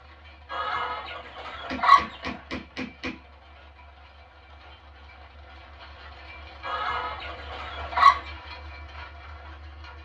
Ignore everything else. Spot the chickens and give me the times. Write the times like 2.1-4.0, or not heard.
0.5-2.3, 6.6-8.2.